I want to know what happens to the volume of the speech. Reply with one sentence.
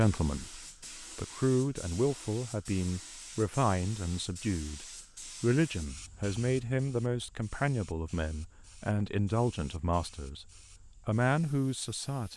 The loudness of the speech stays about the same.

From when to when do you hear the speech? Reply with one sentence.
You can hear the speech from 0.0 to 12.3 s.